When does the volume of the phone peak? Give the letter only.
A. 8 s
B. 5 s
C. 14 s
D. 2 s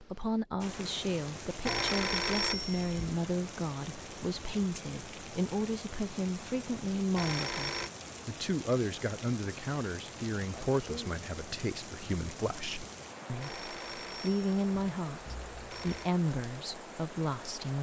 D.